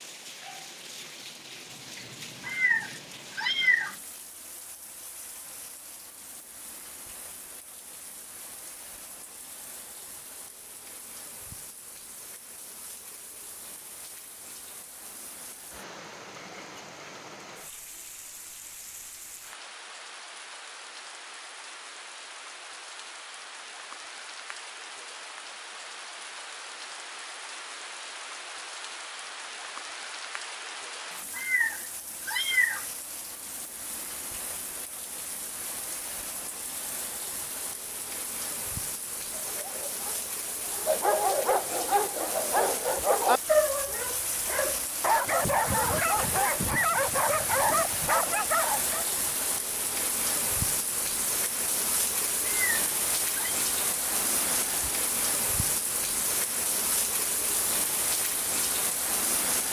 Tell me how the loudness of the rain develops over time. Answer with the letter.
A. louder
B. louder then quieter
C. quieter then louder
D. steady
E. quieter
A.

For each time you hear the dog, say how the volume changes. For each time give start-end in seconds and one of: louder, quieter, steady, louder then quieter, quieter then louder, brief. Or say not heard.
39.4-49.0 steady.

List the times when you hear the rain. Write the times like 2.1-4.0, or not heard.
0.0-59.6.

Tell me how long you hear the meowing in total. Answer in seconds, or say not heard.
4 s.